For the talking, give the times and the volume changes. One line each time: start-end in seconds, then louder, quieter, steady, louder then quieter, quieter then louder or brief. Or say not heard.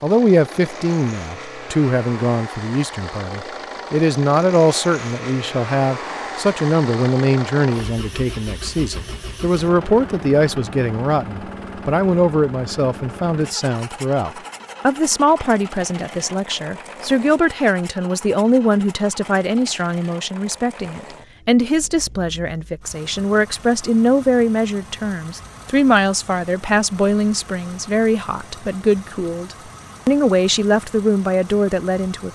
0.0-32.3 steady.